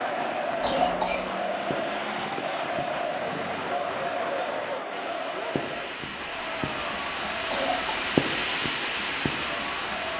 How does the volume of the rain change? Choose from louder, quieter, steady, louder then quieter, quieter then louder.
louder.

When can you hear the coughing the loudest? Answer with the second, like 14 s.
1 s.